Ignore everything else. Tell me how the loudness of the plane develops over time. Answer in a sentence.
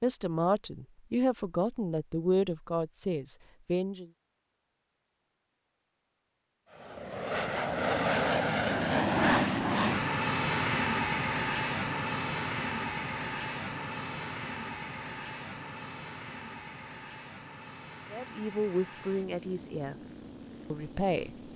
The volume of the plane goes down.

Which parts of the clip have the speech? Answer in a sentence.
The speech can be heard from 0.0 to 4.0 s, from 18.1 to 19.9 s and from 20.7 to 21.3 s.